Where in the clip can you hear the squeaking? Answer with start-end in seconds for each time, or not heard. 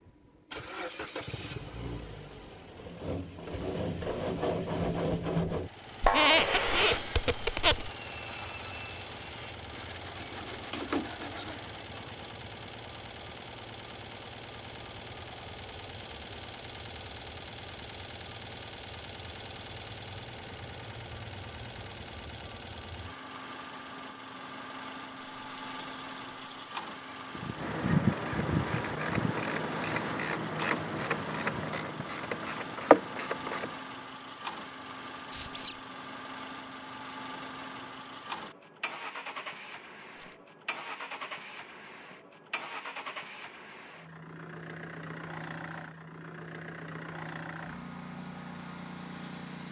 6.0-7.9, 35.3-35.8.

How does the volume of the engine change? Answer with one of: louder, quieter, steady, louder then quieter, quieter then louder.
steady.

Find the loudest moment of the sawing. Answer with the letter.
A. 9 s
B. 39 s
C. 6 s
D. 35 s
C.